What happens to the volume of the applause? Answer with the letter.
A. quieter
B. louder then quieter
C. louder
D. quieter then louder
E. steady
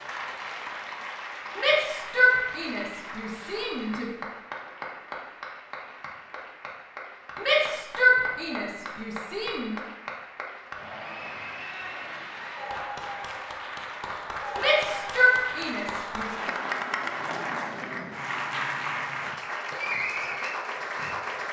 C.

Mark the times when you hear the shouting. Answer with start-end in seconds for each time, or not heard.
1.6-4.1, 7.3-9.8, 14.6-16.3.